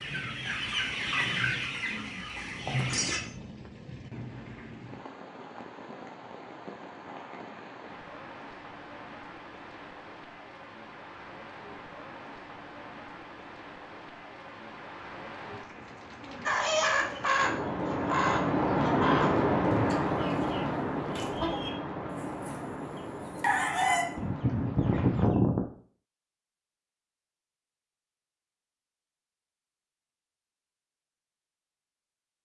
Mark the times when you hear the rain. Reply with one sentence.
The rain can be heard from 0.0 to 25.3 s.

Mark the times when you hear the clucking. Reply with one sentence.
You can hear the clucking from 0.0 to 3.2 s and from 16.4 to 25.6 s.